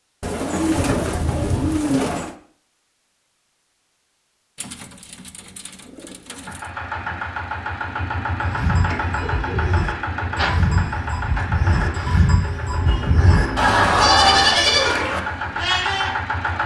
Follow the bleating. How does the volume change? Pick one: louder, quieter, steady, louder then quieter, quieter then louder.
louder.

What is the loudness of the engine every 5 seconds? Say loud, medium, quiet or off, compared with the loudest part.
off, loud, loud, loud.